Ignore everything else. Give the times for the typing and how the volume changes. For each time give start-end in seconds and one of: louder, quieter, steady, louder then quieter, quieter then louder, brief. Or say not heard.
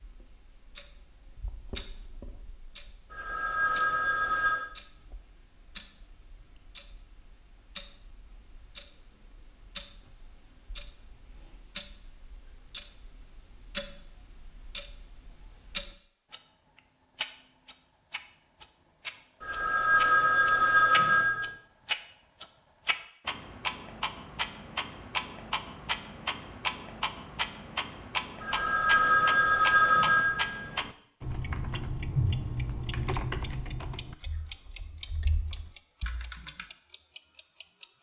31.2-36.6 quieter then louder.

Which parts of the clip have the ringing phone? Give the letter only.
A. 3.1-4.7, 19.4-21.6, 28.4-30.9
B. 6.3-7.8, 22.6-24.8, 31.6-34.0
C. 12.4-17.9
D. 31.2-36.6
A.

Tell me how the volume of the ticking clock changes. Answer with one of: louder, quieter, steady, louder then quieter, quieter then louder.
louder.